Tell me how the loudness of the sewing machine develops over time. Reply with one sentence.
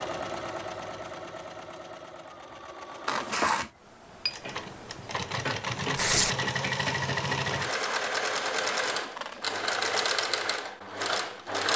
The volume of the sewing machine goes up.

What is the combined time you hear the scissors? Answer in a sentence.
The scissors can be heard for 3 seconds in total.